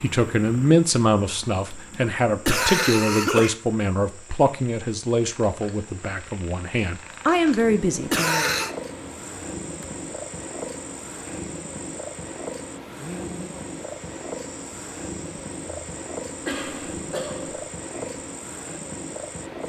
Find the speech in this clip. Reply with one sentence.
The speech can be heard from 0.0 to 8.6 s.